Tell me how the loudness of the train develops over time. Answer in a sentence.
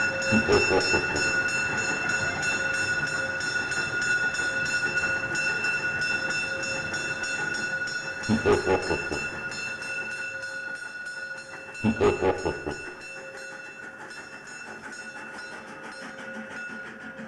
The loudness of the train goes down.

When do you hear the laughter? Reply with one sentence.
The laughter can be heard from 0.3 to 1.4 s, from 8.2 to 9.3 s and from 11.8 to 12.9 s.